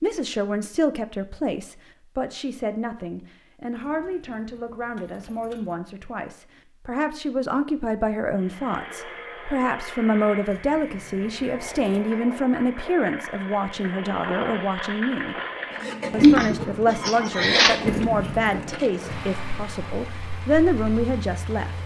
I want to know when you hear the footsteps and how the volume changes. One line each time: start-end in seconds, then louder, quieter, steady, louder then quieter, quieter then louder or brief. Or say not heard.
not heard.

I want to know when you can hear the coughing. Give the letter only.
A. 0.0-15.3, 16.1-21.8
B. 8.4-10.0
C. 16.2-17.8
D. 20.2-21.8
C.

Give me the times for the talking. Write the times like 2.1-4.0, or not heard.
0.0-15.3, 16.1-21.8.